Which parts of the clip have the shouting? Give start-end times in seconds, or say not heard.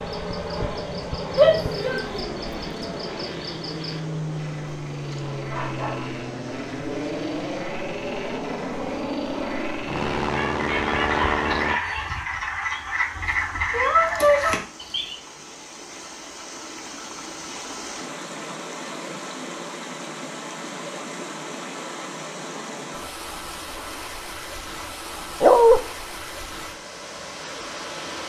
1.4-2.0.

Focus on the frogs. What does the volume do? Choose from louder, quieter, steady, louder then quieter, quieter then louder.
louder.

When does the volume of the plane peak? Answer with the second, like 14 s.
11 s.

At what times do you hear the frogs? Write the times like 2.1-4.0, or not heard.
0.0-15.2.